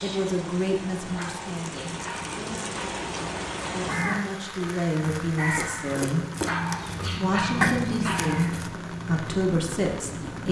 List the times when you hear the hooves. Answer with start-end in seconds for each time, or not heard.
not heard.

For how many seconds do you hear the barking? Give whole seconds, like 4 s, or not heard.
4 s.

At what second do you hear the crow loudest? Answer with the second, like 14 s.
8 s.